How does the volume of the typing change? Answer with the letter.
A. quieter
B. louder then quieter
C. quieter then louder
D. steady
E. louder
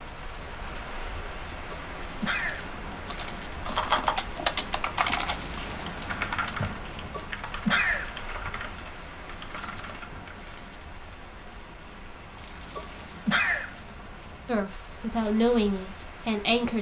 A.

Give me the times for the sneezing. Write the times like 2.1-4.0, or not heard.
1.7-2.6, 7.1-8.1, 12.8-13.7.